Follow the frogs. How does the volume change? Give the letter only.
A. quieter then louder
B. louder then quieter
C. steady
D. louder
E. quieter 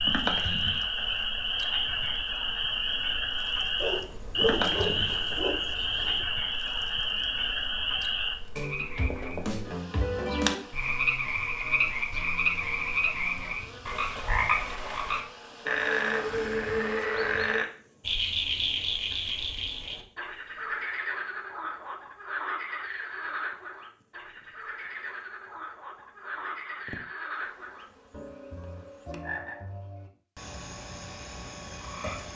E.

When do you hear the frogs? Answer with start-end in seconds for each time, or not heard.
0.0-32.3.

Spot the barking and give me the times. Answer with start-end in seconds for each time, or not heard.
3.8-6.2.